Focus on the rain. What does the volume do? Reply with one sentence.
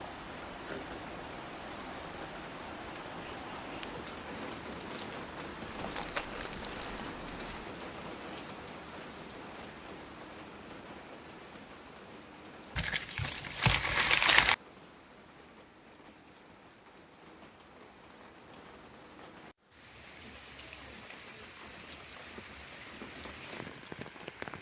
The loudness of the rain goes down, then up.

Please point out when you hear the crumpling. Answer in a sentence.
The crumpling can be heard from 5.7 to 7.7 s and from 12.8 to 14.6 s.